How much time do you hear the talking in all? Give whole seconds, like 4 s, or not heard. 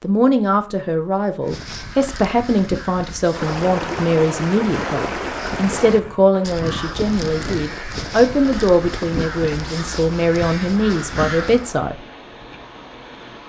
12 s.